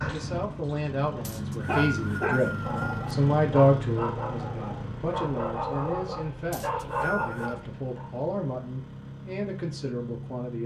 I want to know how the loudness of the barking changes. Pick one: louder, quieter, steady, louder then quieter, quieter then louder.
steady.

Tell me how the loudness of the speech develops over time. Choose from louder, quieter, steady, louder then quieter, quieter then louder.
louder then quieter.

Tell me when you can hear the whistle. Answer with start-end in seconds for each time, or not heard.
1.2-3.0, 6.5-7.7.